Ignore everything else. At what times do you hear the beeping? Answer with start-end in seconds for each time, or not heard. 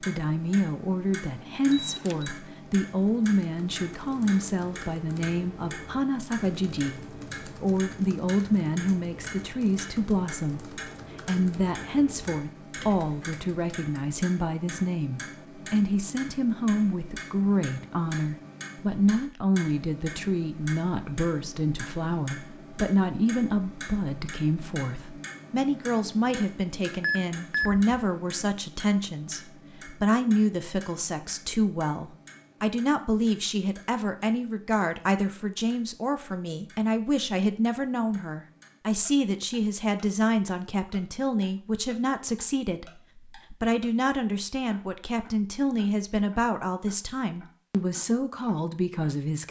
1.7-2.3, 27.0-27.9.